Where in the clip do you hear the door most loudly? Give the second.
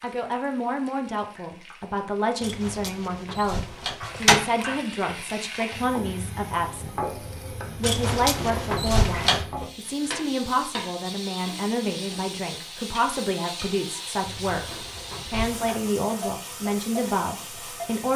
4 s.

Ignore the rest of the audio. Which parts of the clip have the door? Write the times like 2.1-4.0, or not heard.
2.4-4.5, 7.8-9.4, 14.2-15.9.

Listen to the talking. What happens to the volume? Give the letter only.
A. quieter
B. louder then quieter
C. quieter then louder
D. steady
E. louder
D.